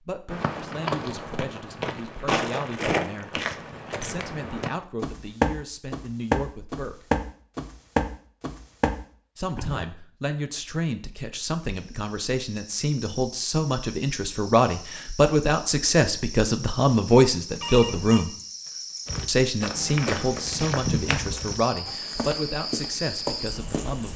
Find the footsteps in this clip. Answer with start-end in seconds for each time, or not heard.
0.3-9.8, 19.1-24.1.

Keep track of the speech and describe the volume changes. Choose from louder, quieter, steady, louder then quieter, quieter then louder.
louder then quieter.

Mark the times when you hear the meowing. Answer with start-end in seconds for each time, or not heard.
not heard.